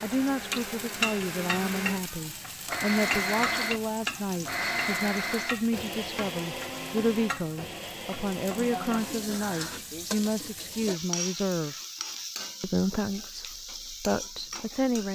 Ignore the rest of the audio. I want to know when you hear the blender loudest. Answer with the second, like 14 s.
3 s.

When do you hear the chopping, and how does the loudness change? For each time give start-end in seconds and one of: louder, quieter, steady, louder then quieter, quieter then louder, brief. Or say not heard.
not heard.